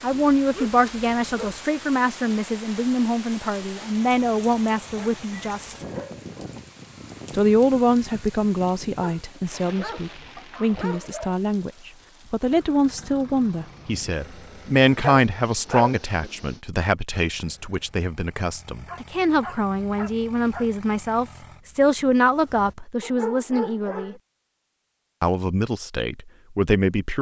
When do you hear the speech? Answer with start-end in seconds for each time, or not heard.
0.0-5.8, 7.3-24.1, 25.2-27.1.